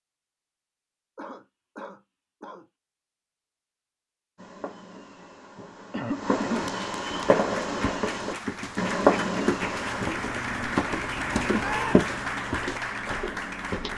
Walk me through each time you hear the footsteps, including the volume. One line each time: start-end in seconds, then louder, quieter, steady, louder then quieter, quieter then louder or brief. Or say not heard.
7.1-13.9 louder then quieter.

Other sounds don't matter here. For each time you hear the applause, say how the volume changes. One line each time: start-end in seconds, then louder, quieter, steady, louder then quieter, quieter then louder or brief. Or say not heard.
6.5-13.9 louder.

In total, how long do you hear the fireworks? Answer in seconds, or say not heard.
6 s.